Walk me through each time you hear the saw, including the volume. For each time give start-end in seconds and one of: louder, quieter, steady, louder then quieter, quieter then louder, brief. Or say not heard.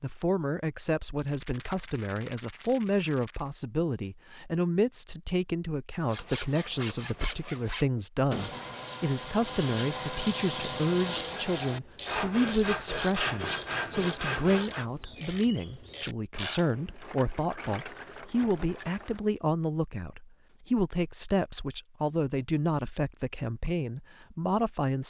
6.0-14.8 louder.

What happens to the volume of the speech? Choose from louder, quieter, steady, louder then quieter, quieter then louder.
steady.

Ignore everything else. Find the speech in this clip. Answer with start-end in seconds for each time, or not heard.
0.0-25.0.